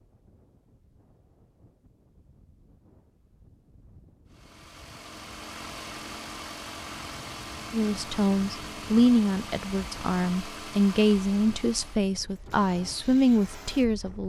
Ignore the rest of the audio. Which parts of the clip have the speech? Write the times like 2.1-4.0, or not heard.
7.7-14.2.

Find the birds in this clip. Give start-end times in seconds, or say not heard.
not heard.